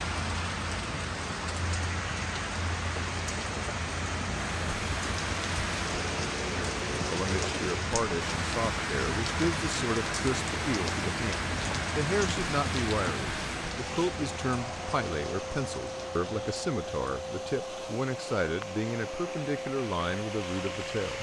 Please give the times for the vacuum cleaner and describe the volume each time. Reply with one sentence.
You can hear the vacuum cleaner from 4.3 to 21.1 s, at a steady volume.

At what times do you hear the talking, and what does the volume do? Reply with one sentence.
You can hear the talking from 7.0 to 21.1 s, at a steady volume.